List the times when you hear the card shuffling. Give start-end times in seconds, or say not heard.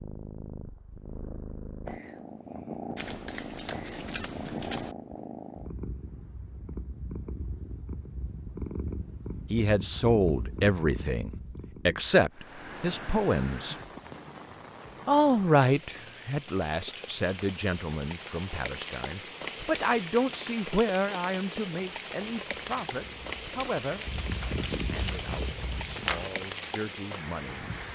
3.0-5.0, 24.4-26.3.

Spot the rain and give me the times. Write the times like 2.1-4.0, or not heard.
12.3-27.9.